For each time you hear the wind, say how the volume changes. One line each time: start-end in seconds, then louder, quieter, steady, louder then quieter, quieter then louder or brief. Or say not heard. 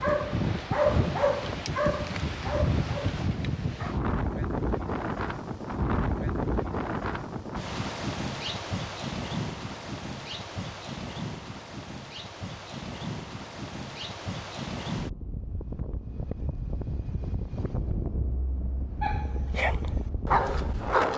0.0-21.1 quieter.